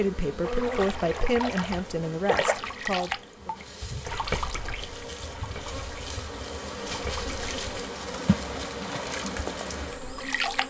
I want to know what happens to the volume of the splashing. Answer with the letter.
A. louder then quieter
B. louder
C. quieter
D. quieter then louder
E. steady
D.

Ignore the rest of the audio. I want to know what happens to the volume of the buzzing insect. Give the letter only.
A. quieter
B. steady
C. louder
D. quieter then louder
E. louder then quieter
D.